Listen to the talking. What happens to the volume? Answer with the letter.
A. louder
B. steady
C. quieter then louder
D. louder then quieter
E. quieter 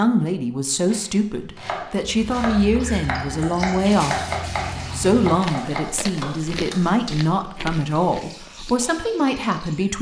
B.